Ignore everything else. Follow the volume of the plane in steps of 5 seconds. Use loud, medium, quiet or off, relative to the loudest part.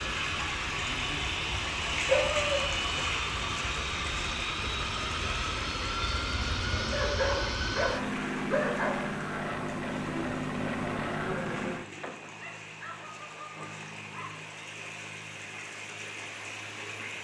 loud, loud, loud, quiet.